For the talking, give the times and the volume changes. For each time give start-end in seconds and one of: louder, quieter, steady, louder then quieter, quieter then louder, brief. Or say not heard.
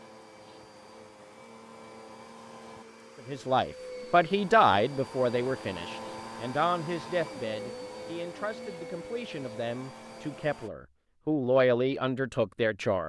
3.2-13.0 quieter then louder.